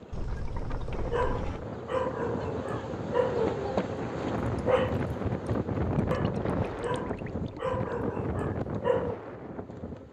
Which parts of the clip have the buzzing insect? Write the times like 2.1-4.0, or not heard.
0.0-10.0.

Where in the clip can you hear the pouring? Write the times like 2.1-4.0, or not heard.
0.1-1.6, 6.1-7.7.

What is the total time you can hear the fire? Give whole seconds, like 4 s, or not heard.
not heard.